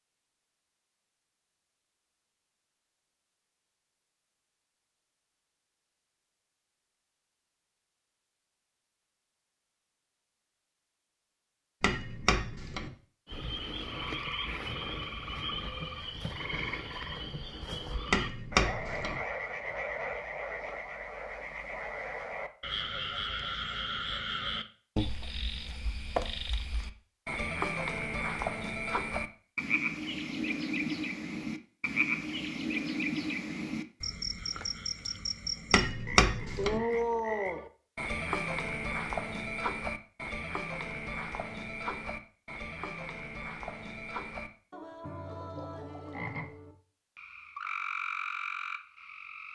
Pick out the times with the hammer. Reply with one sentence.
The hammer can be heard from 11.8 to 12.9 s, from 18.1 to 19.2 s and from 35.7 to 36.8 s.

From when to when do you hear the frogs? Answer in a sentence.
The frogs can be heard from 13.2 to 49.5 s.